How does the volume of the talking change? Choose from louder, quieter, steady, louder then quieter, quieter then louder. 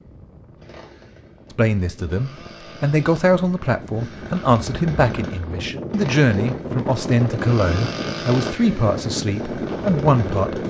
steady.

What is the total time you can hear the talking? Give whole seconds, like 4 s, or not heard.
9 s.